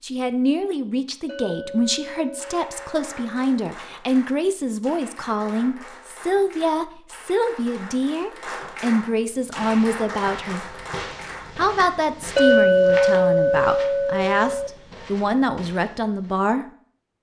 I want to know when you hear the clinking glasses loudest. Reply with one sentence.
The loudest moment of the clinking glasses is at 13 seconds.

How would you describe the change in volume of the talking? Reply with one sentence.
The volume of the talking stays about the same.